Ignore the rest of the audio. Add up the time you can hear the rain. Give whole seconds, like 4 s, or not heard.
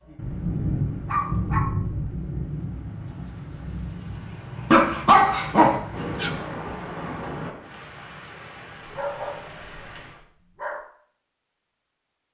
10 s.